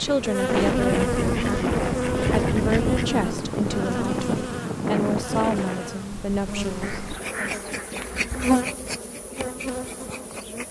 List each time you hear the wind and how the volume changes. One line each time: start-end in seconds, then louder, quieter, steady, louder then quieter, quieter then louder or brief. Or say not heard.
0.0-6.0 steady.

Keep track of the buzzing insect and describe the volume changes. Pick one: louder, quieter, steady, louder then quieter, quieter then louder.
quieter then louder.